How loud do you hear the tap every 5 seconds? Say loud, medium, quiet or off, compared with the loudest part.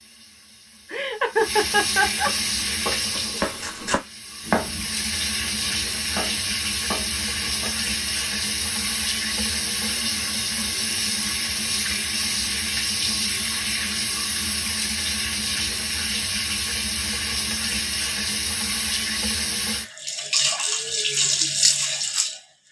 medium, loud, loud, loud, loud.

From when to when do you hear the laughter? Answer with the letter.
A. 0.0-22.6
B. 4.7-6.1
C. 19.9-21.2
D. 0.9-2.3
D.